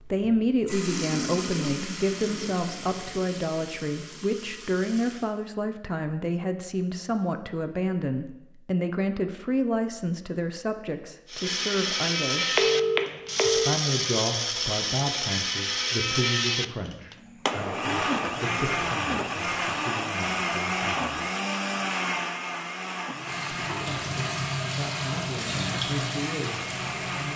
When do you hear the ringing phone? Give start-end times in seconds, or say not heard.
12.6-13.7.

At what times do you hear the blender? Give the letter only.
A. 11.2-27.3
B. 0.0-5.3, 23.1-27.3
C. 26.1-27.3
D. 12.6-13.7
A.